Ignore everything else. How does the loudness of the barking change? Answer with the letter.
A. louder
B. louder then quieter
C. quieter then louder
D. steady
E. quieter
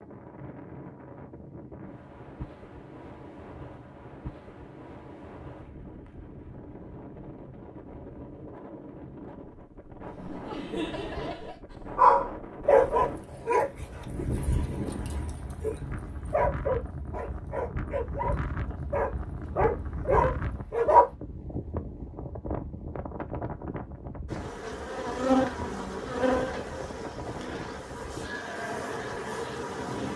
C.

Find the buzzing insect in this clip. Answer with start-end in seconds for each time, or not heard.
24.3-30.1.